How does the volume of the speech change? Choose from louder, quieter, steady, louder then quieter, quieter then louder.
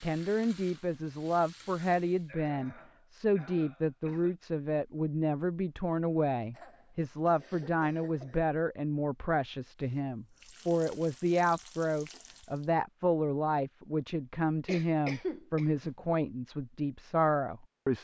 steady.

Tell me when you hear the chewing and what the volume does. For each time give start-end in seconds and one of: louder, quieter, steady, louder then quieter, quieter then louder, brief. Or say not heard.
not heard.